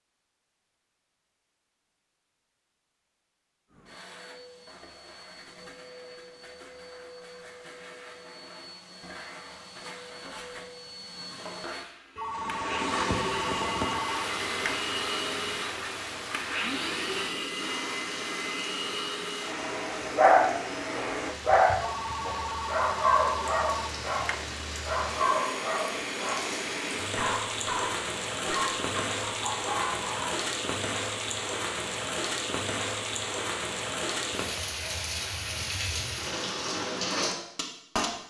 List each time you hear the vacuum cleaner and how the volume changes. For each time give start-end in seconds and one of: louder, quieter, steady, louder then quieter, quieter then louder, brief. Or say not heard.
3.7-21.4 louder.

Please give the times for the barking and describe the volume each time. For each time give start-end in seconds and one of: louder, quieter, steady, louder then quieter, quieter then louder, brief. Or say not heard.
20.1-30.4 quieter.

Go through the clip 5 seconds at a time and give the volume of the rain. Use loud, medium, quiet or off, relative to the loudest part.
off, off, loud, medium, medium, loud, loud, loud.